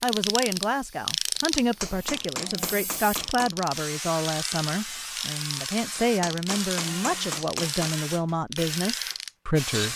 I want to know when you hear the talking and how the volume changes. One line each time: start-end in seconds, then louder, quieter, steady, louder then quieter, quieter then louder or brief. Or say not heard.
0.0-9.9 steady.